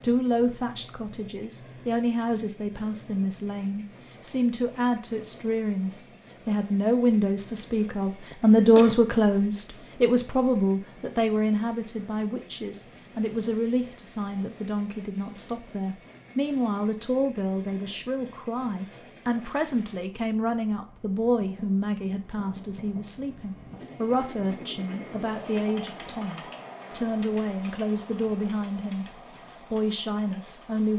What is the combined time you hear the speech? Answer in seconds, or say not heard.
31 s.